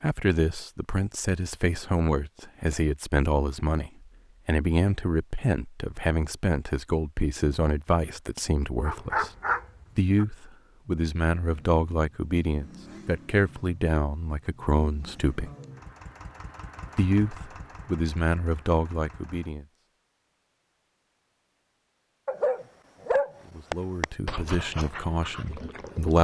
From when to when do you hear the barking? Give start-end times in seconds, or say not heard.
8.7-10.2, 22.2-26.1.